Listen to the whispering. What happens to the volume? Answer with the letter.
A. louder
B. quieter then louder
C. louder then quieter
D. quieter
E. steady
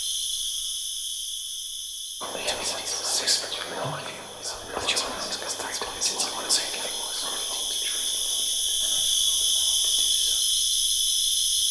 D.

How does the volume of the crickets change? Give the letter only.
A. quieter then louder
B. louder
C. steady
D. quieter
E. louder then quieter
A.